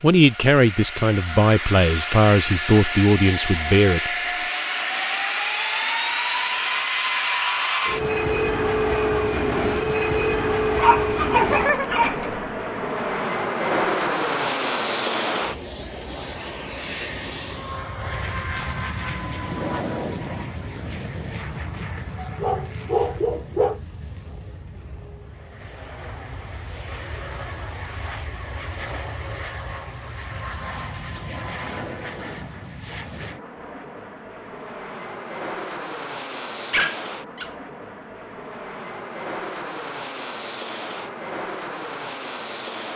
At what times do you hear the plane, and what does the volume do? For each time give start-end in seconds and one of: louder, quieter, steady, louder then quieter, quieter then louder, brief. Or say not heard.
0.0-42.9 quieter.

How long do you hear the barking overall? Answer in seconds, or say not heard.
4 s.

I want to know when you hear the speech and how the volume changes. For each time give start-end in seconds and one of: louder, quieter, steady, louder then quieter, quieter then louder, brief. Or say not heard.
0.0-4.2 steady.